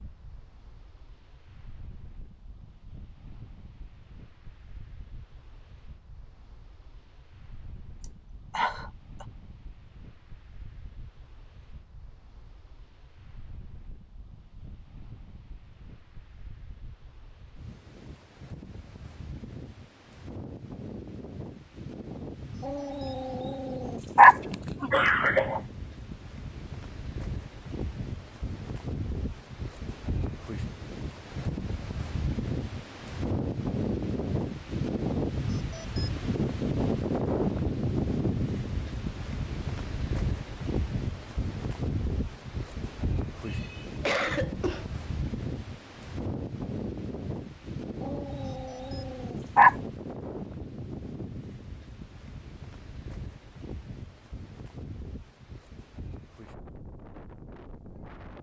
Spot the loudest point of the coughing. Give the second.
25 s.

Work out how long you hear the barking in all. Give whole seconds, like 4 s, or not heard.
4 s.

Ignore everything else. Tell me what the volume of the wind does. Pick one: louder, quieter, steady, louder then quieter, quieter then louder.
louder then quieter.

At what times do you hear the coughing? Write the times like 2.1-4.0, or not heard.
8.6-9.2, 24.9-25.6, 43.5-44.9.